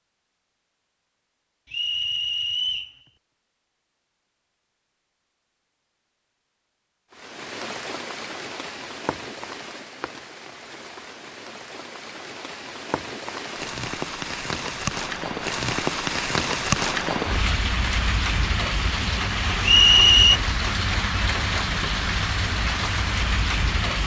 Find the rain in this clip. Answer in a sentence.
You can hear the rain from 7.1 to 24.0 s.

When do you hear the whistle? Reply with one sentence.
The whistle can be heard from 1.7 to 3.0 s and from 19.6 to 20.4 s.